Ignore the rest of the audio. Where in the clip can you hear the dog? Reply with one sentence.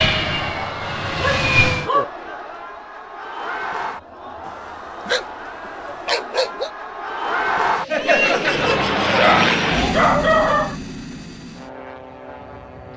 You can hear the dog from 1.1 to 2.0 s, from 4.5 to 5.2 s, from 6.0 to 6.7 s and from 9.1 to 10.8 s.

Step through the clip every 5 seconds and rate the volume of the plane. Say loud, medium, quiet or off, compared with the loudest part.
loud, loud, medium.